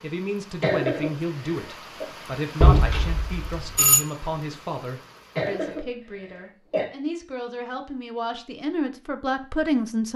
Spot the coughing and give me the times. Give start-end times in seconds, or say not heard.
0.6-2.0, 5.3-6.8.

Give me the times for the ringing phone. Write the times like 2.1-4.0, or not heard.
2.6-4.0.